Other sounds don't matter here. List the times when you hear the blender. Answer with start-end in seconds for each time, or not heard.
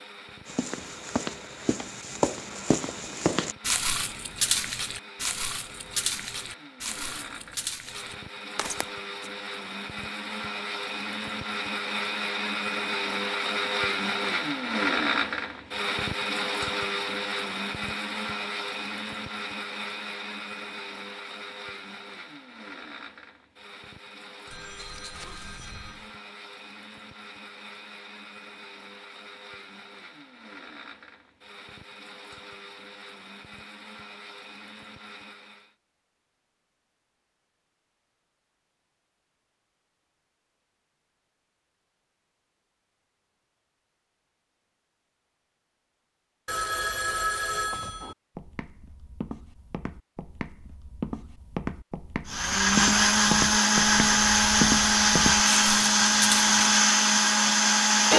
0.0-35.8, 52.2-58.1.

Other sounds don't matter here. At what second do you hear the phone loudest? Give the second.
47 s.